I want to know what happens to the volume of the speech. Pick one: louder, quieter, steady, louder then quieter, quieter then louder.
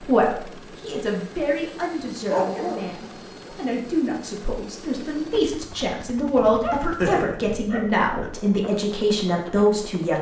louder.